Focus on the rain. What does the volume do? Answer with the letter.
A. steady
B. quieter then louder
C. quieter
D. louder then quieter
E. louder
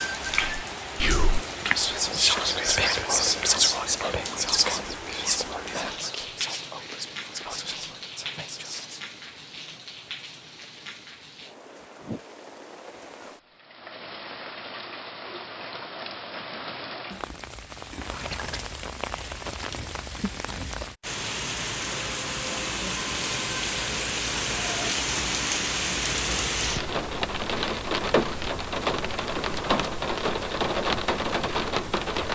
B.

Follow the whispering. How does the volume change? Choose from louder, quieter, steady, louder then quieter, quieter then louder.
quieter.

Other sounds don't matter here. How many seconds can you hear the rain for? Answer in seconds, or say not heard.
32 s.